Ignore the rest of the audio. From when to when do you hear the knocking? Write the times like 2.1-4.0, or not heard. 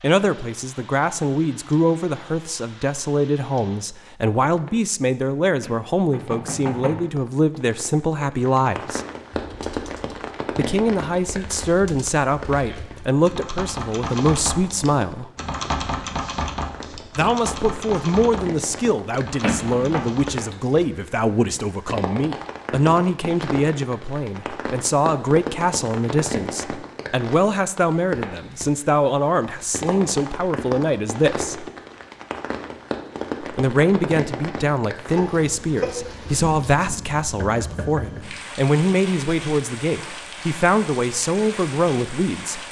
5.6-7.0, 19.4-20.1, 37.4-38.2.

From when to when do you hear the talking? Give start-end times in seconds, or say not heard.
0.0-9.0, 10.6-15.2, 17.1-31.6, 33.4-42.6.